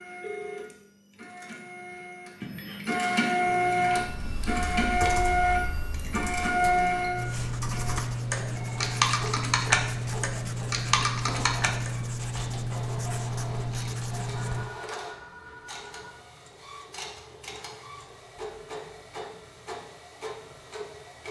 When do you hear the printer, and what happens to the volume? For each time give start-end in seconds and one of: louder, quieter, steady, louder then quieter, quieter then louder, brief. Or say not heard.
0.0-21.2 quieter.